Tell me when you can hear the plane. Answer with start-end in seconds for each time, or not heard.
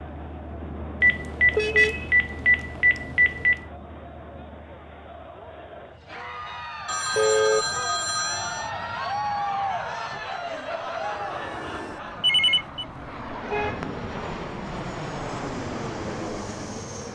0.0-17.0.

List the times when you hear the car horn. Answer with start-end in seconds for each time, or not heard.
1.5-2.1, 7.2-7.8, 13.5-14.1.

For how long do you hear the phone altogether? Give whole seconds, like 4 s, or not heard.
5 s.